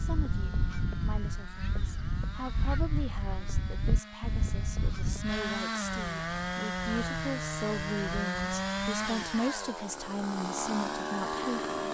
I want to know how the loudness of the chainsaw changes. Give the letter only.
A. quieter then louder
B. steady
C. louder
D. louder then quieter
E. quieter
C.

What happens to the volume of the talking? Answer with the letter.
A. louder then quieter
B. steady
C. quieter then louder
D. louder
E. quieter
D.